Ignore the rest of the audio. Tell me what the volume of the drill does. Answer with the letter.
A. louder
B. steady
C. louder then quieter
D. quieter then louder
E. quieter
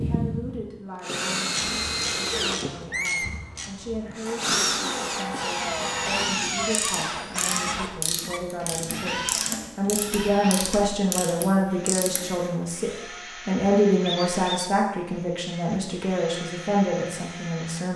E.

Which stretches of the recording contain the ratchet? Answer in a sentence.
The ratchet can be heard from 1.5 to 12.4 s.